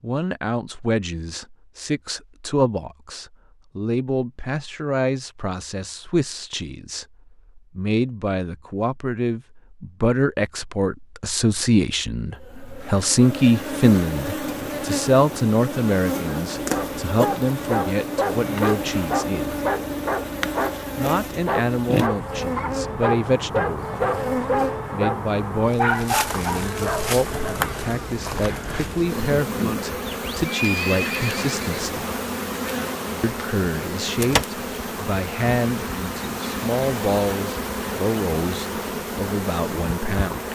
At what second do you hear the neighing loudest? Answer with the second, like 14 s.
31 s.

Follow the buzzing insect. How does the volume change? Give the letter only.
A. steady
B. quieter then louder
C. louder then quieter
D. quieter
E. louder
A.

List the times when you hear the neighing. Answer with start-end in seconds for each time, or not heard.
30.4-32.0.